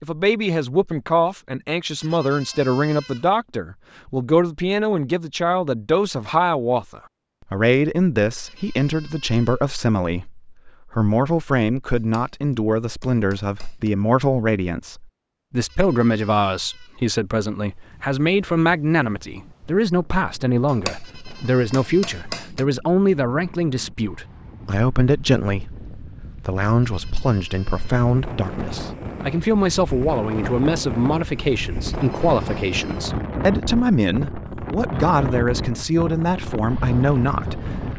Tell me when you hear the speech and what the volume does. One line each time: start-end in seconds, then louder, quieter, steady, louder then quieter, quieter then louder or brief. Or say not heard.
0.0-37.9 steady.